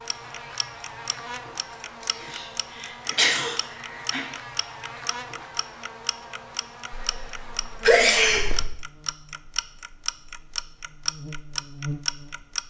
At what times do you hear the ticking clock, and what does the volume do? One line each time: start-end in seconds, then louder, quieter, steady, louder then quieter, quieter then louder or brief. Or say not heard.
0.1-12.6 louder.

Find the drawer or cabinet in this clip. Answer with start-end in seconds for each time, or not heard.
not heard.